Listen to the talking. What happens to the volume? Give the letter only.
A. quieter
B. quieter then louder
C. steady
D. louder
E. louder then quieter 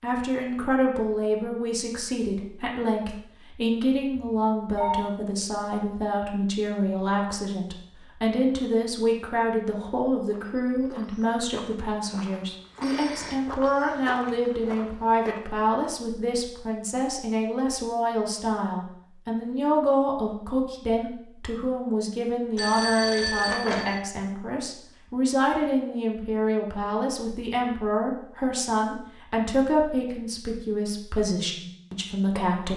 C.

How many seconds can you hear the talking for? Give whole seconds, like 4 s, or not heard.
33 s.